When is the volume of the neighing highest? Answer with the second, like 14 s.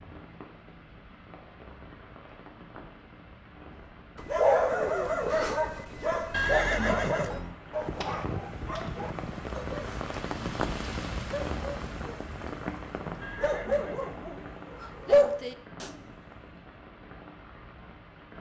7 s.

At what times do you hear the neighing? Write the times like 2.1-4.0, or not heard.
6.3-7.5, 13.2-14.3.